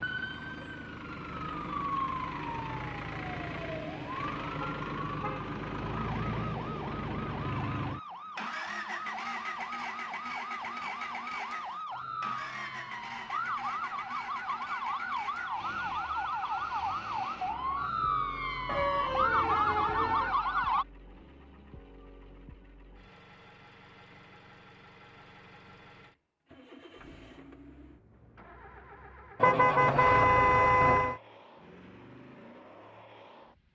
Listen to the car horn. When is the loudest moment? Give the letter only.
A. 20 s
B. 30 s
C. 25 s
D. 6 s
B.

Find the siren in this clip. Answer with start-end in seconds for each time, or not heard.
0.0-20.9.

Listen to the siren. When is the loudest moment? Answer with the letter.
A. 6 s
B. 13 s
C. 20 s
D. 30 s
C.